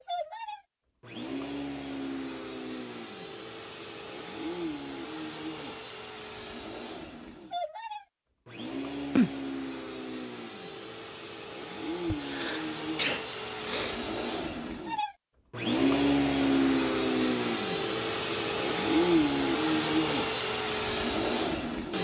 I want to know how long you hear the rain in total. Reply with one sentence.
The rain can't be heard in this clip.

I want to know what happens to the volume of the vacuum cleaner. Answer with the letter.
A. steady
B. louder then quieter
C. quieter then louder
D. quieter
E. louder
E.